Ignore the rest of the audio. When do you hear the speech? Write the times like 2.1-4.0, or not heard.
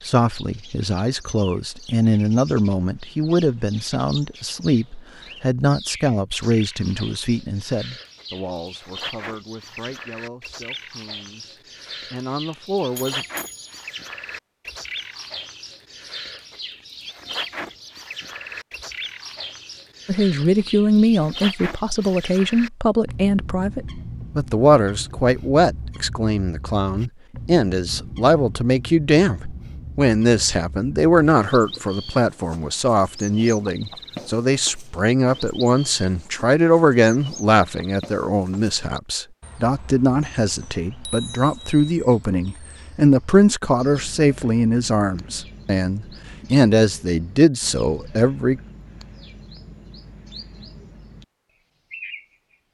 0.0-13.2, 20.1-48.6.